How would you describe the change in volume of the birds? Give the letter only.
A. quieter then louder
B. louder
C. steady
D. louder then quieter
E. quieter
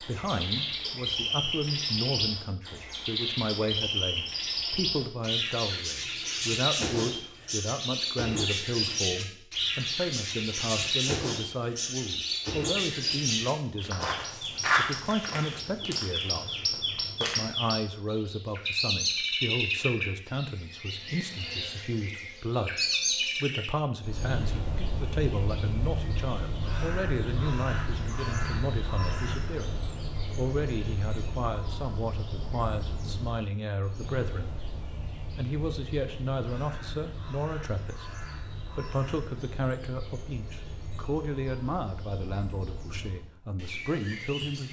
E.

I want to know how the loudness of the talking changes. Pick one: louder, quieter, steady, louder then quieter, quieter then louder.
steady.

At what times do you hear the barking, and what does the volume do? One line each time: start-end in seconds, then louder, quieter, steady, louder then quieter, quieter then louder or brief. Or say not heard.
not heard.